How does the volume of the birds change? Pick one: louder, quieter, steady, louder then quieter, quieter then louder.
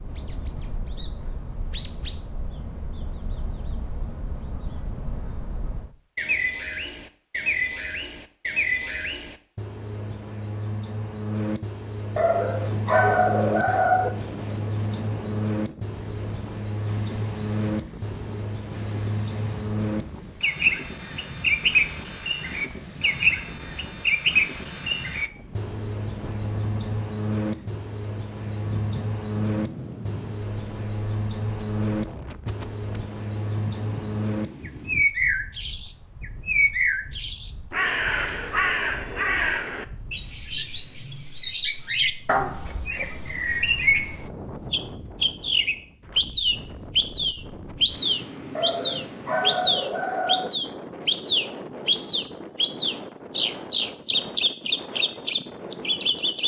louder.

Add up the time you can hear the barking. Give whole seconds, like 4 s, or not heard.
4 s.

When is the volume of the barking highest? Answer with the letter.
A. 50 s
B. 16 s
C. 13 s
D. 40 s
C.